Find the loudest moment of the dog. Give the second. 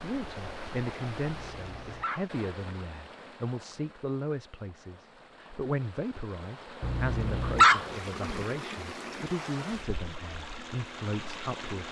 8 s.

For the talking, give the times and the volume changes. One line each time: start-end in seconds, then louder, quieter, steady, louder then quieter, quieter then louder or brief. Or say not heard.
0.0-11.8 steady.